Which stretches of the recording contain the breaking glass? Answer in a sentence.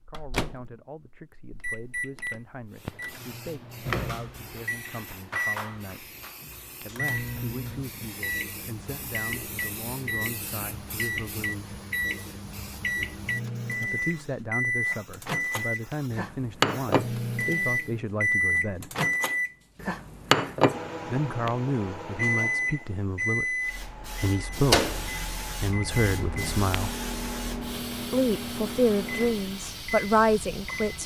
The breaking glass can't be heard in this clip.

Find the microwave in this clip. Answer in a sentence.
The microwave can be heard from 0.0 to 31.0 s.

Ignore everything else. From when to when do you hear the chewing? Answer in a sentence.
You can't hear the chewing here.